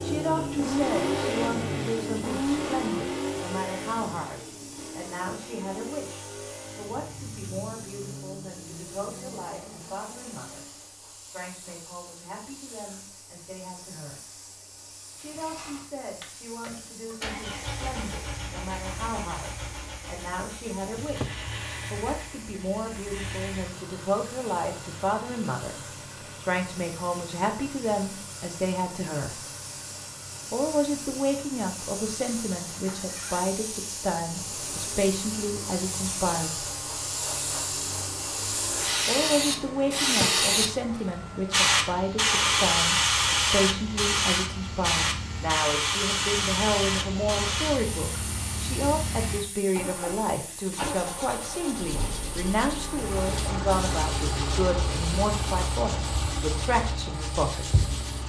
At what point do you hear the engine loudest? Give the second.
1 s.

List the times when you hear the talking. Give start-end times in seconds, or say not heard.
0.0-10.7, 11.2-14.3, 15.2-25.8, 26.4-29.4, 30.5-36.6, 39.0-57.8.